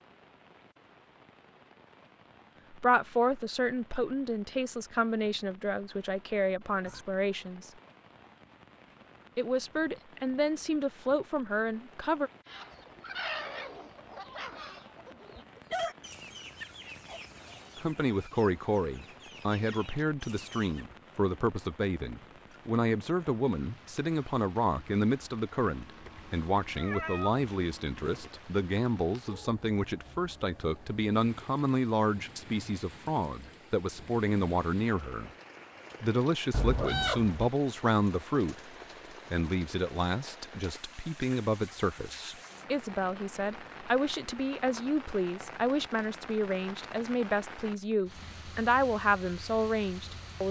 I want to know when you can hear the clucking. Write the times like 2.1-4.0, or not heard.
12.4-20.9.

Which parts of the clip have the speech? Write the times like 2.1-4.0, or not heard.
2.7-7.7, 9.3-12.3, 17.8-35.3, 36.0-38.6, 39.3-50.4.